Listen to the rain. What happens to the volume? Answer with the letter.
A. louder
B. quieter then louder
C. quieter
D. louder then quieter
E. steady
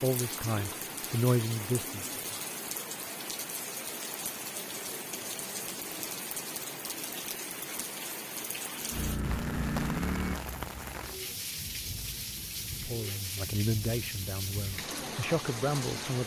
E.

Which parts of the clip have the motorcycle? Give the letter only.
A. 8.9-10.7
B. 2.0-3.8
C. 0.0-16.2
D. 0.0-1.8
A.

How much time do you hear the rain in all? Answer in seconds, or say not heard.
16 s.